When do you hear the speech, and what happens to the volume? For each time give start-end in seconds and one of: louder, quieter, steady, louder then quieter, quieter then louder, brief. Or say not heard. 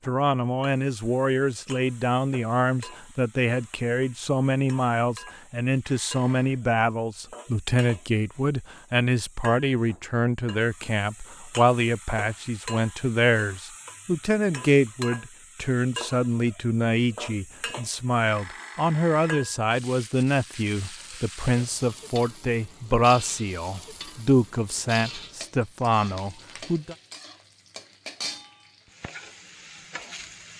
0.1-26.9 steady.